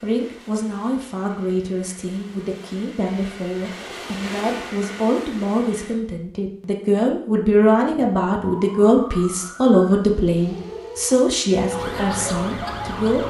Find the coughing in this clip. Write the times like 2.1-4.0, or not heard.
not heard.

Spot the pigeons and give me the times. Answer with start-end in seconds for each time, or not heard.
not heard.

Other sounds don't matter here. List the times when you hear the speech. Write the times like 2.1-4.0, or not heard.
0.0-13.2.